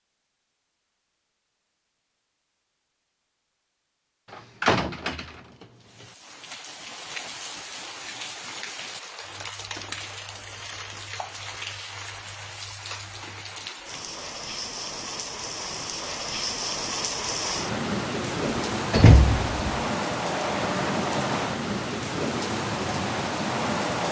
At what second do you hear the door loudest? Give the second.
19 s.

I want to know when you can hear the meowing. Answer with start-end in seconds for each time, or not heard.
not heard.